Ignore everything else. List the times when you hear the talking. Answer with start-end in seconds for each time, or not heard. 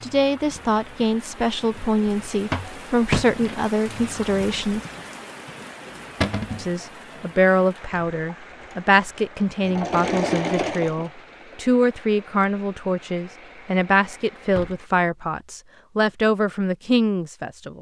0.0-4.8, 6.5-17.7.